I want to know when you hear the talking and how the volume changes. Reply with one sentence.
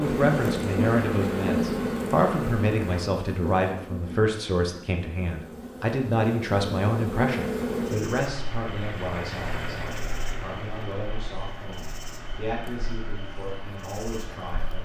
The talking can be heard from 0.0 to 14.8 s, getting quieter.